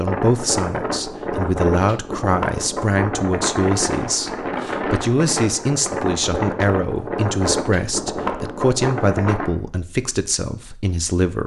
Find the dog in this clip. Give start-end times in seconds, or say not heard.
not heard.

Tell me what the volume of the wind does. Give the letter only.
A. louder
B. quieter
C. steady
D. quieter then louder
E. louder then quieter
C.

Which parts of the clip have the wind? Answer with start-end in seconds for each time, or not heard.
0.0-9.5.